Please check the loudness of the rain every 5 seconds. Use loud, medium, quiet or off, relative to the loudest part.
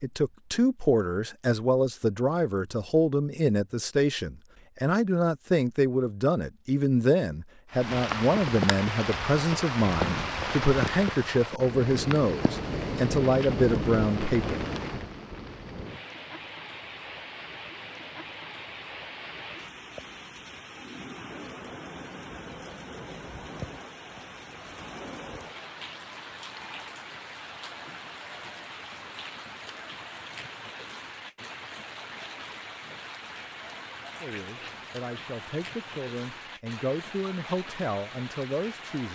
off, loud, loud, medium, medium, medium, medium, medium.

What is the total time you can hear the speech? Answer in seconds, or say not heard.
19 s.